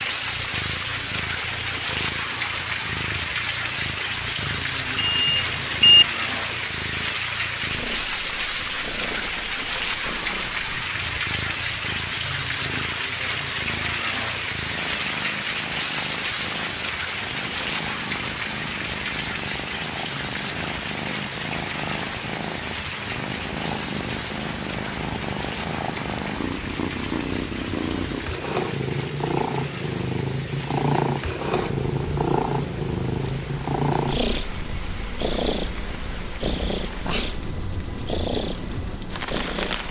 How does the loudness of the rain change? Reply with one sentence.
The volume of the rain goes down.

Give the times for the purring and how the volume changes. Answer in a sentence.
You can hear the purring from 0.0 to 39.8 s, getting louder.